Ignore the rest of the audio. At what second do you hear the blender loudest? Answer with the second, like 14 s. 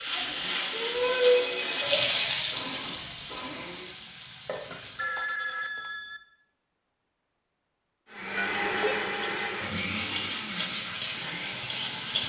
9 s.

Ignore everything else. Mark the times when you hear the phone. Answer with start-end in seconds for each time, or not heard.
1.1-2.1, 4.5-6.2, 8.3-9.0.